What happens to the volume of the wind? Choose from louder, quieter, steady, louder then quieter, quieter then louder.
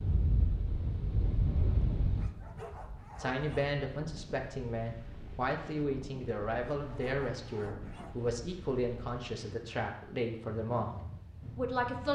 quieter.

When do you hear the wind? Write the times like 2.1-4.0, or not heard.
0.0-12.1.